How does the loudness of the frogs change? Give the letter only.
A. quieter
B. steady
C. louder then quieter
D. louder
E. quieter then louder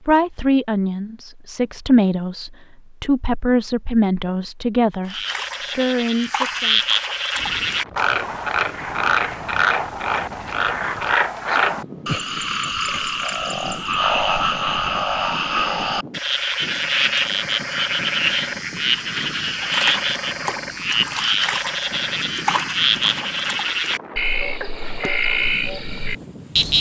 B.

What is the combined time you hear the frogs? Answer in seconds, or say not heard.
22 s.